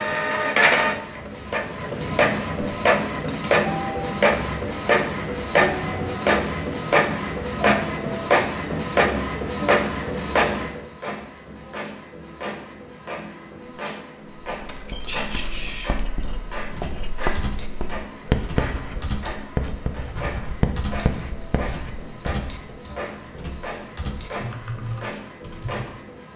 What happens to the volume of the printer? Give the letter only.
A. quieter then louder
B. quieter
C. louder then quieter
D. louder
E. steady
B.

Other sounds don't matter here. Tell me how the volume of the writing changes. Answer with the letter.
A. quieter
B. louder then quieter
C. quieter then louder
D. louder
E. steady
B.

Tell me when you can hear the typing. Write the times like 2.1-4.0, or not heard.
14.4-26.0.